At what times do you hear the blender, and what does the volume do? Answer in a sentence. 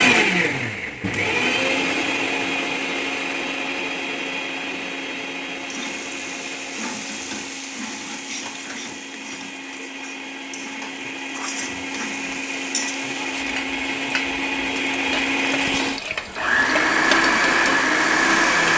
The blender can be heard from 0.0 to 18.7 s, getting quieter then louder.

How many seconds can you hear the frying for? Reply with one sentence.
The frying can be heard for 13 seconds in total.